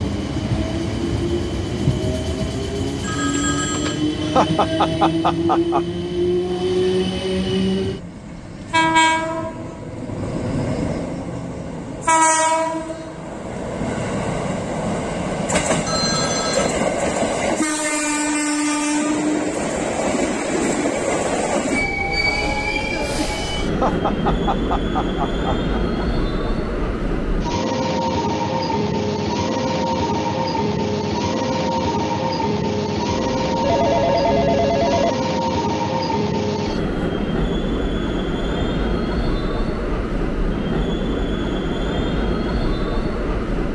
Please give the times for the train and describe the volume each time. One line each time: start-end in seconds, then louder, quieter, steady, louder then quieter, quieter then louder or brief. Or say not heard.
0.0-43.7 steady.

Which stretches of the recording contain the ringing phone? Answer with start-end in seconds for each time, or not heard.
3.0-4.0, 15.8-16.8, 33.3-35.1.